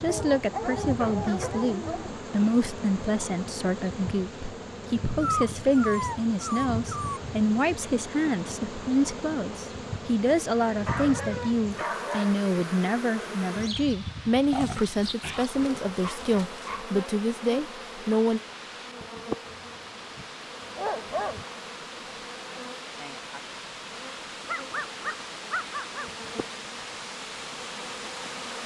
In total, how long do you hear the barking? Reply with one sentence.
You can hear the barking for 12 seconds altogether.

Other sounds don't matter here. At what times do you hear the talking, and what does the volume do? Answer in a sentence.
The talking can be heard from 0.0 to 18.4 s, at a steady volume.